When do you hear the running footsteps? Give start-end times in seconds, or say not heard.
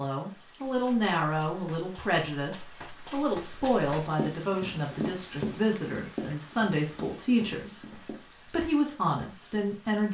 0.7-8.2.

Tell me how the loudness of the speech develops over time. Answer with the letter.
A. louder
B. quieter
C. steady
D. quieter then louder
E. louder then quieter
C.